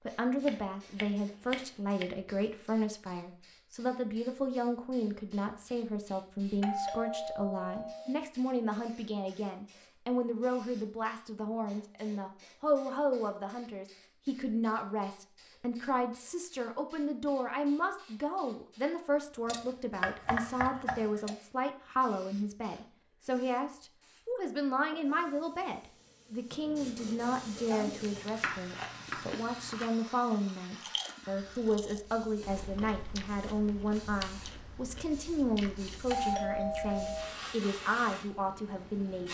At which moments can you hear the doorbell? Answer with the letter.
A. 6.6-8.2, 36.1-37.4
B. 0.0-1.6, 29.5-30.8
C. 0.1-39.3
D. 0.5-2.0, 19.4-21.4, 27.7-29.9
A.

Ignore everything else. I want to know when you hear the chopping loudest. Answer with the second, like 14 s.
20 s.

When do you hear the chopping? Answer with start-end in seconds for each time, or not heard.
0.5-2.0, 19.4-21.4, 27.7-29.9.